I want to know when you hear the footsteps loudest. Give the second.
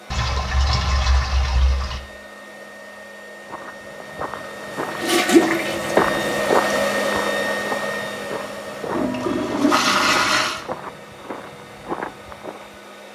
6 s.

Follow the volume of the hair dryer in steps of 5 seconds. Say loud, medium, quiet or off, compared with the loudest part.
quiet, loud, quiet.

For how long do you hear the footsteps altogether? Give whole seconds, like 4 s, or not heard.
9 s.